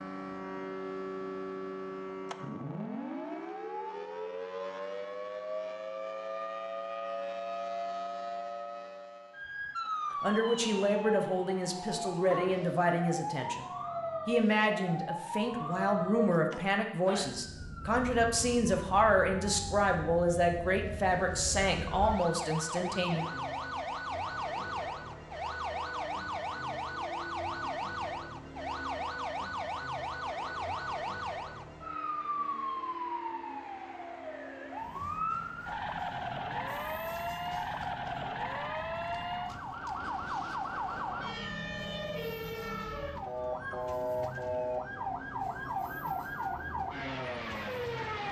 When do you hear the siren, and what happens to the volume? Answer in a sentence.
You can hear the siren from 0.0 to 48.2 s, at a steady volume.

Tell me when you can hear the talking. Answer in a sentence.
The talking can be heard from 10.2 to 13.7 s and from 14.2 to 23.2 s.